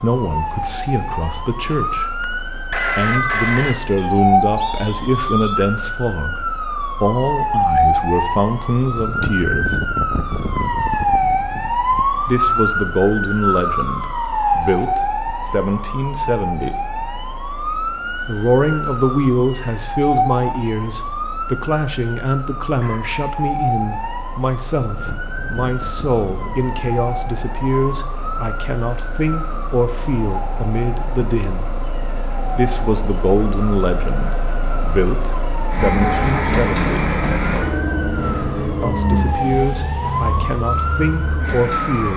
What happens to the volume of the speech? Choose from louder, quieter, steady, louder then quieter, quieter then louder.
steady.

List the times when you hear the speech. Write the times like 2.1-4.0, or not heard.
0.0-9.8, 12.2-16.8, 18.2-31.7, 32.5-37.0, 38.8-42.1.